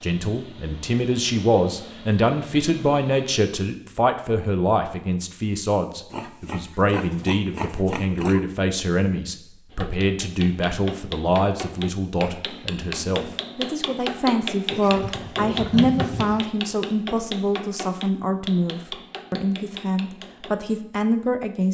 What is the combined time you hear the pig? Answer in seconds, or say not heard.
4 s.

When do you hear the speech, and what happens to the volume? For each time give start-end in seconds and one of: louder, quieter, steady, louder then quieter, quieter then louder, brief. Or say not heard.
0.0-21.6 steady.